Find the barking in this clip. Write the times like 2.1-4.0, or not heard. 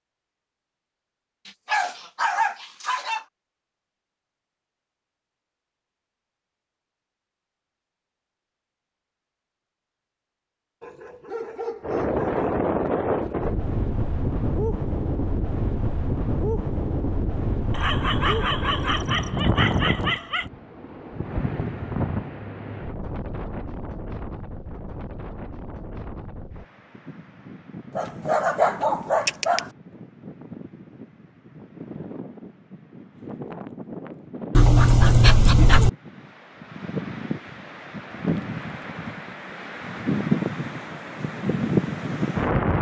1.4-3.2, 10.8-12.6, 17.7-20.4, 27.9-29.6, 34.5-35.9.